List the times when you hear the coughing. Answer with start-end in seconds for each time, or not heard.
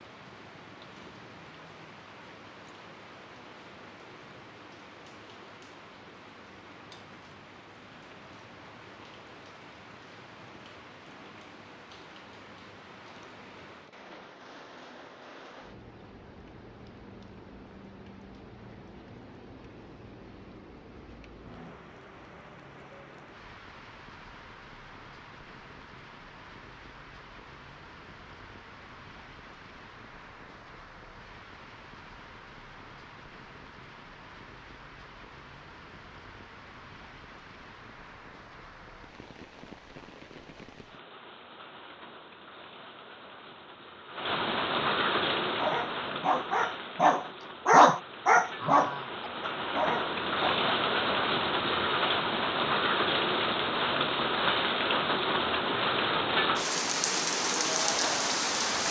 not heard.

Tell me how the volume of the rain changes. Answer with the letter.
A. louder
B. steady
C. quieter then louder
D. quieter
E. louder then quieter
A.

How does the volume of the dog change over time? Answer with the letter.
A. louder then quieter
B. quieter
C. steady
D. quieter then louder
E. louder
A.